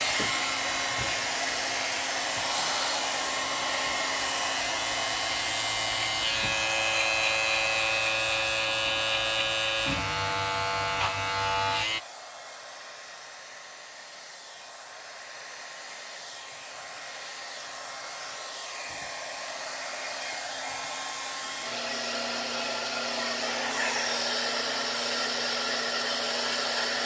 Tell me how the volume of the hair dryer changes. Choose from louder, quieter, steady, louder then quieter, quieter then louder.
quieter then louder.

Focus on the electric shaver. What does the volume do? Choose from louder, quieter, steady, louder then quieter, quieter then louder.
louder.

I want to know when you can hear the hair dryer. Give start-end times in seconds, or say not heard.
0.0-27.0.